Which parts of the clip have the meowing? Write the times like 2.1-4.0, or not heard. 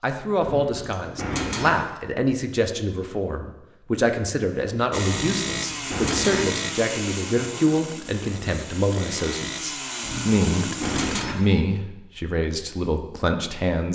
0.4-1.7, 5.3-6.5, 10.0-11.3.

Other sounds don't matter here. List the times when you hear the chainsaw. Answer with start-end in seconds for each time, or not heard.
4.9-11.2.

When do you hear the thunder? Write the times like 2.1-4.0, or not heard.
not heard.